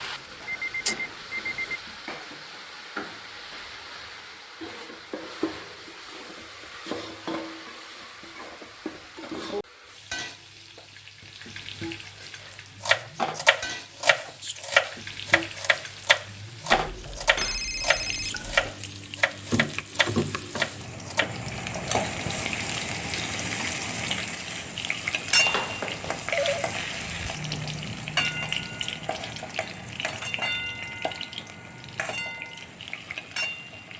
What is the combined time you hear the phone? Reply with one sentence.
You can hear the phone for 5 seconds altogether.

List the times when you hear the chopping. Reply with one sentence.
You can hear the chopping from 12.8 to 21.4 s.